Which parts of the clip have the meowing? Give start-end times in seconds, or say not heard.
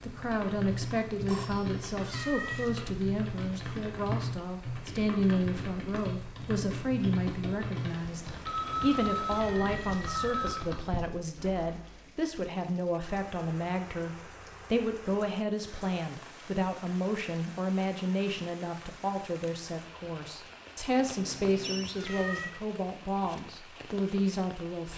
1.9-2.7, 9.3-10.6, 21.8-22.5.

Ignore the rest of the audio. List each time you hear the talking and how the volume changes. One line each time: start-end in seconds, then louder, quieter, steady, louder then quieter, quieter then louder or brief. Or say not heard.
0.0-24.9 steady.